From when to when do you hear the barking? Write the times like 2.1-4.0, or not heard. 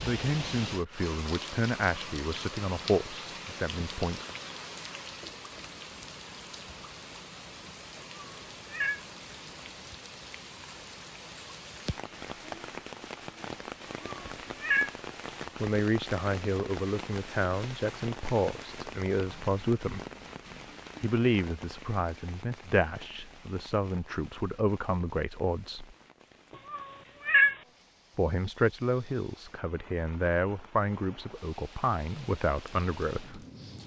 not heard.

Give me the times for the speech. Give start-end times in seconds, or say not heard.
0.0-4.2, 15.6-20.0, 21.0-25.9, 28.1-33.4.